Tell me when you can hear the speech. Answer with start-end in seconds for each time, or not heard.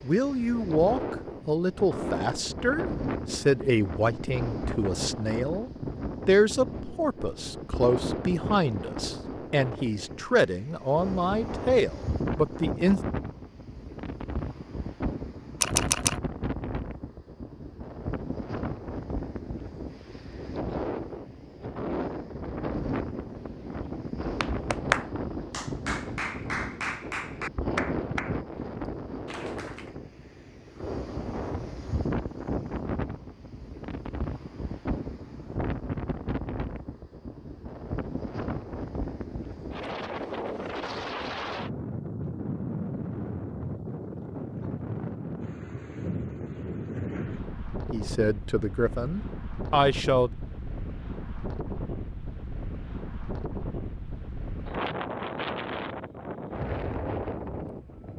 0.0-13.0, 47.9-50.3.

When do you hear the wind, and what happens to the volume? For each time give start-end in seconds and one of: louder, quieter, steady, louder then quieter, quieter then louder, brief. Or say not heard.
0.0-58.1 steady.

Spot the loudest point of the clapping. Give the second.
25 s.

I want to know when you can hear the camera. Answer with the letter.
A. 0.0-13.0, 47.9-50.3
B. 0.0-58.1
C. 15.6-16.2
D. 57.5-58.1
C.